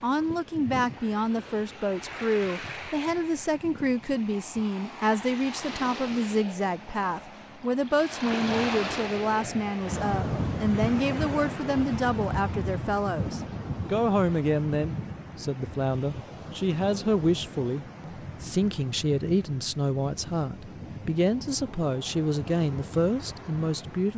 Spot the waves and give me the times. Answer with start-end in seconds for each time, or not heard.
0.0-24.1.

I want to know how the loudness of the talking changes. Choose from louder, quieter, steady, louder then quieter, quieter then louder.
steady.